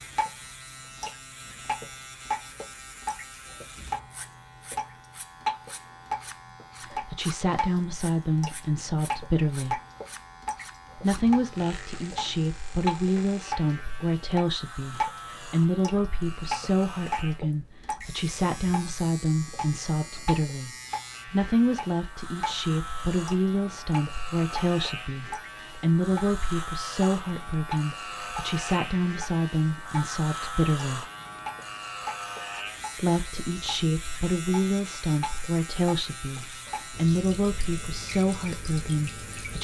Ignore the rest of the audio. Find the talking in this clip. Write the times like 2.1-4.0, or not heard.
6.9-9.8, 10.9-31.1, 33.0-39.5.